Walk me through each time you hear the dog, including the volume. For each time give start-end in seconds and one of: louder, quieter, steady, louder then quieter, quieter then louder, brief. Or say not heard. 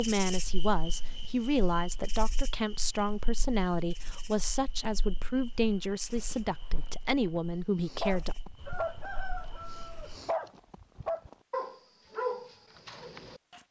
7.8-13.6 quieter then louder.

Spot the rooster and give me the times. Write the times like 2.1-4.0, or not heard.
8.6-10.3.